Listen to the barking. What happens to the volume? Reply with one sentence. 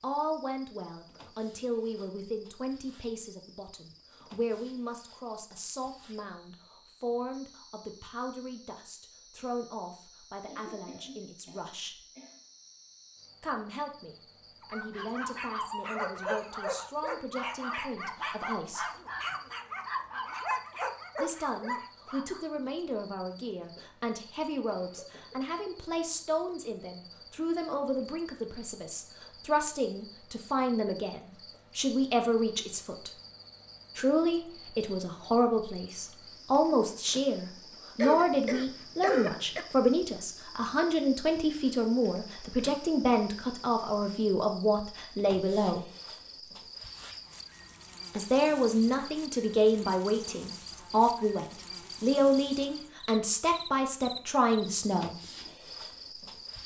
The volume of the barking stays about the same.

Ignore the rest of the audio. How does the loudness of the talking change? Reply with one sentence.
The loudness of the talking goes up.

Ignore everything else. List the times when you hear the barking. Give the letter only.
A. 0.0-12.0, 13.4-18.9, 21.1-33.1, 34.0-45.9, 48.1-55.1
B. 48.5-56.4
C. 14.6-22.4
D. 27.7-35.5
C.